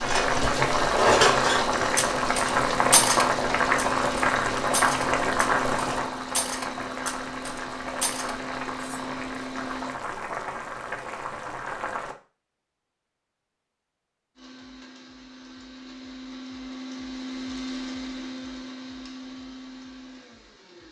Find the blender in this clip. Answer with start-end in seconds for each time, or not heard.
0.0-10.0, 14.3-20.8.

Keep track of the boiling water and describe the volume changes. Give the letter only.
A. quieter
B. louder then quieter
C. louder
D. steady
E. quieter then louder
A.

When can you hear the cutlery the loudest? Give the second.
1 s.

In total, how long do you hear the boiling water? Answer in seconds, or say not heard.
12 s.